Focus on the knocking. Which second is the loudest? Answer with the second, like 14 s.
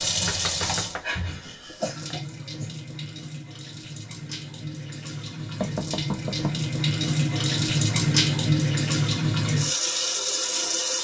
6 s.